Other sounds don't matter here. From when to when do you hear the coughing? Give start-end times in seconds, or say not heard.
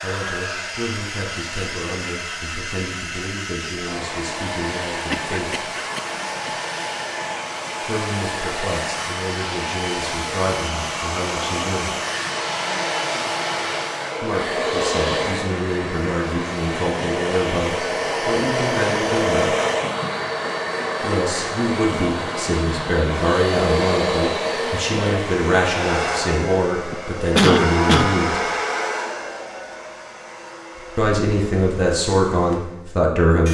4.9-6.5, 26.9-28.1.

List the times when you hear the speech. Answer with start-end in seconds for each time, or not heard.
0.0-5.7, 7.8-11.9, 14.2-19.6, 21.0-28.4, 30.9-33.4.